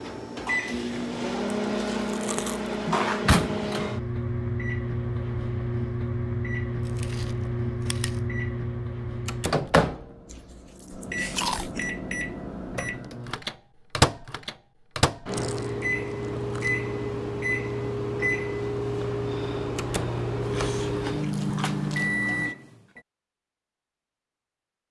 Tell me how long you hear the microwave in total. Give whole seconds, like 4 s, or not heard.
23 s.